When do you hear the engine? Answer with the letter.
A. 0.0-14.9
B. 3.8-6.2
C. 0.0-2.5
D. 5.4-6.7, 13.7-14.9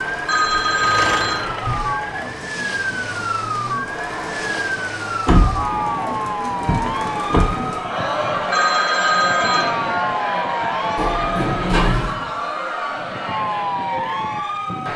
C.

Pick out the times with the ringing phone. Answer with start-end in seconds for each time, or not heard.
0.2-1.5, 8.5-9.8.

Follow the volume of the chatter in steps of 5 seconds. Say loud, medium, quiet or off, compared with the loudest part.
medium, loud, loud.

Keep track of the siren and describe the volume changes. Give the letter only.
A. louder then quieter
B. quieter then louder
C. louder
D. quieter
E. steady
E.